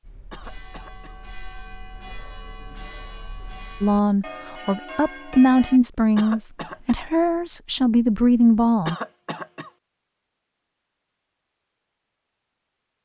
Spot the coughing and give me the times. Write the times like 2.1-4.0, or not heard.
0.3-1.1, 6.2-7.0, 8.8-9.7.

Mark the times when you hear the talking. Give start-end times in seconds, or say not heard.
3.8-8.9.